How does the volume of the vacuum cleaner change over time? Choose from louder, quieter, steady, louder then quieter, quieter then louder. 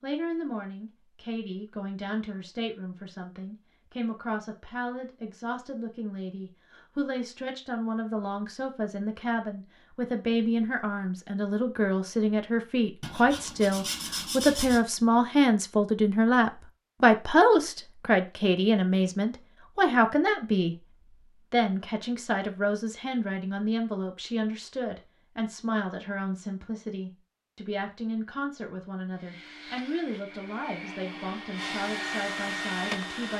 louder.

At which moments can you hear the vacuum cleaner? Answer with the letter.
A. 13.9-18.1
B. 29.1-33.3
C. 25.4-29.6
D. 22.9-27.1
B.